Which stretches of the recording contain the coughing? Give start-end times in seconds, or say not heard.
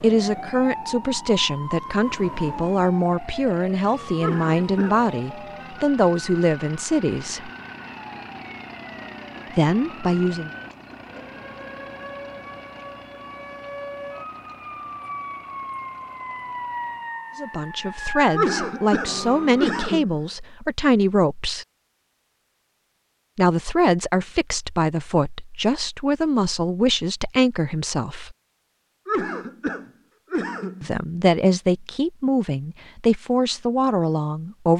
4.2-5.0, 18.4-20.1, 29.1-30.9.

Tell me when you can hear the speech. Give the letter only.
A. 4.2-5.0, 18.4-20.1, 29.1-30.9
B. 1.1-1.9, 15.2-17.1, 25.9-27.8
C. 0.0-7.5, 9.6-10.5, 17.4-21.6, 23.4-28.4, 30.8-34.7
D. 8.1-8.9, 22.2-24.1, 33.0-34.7
C.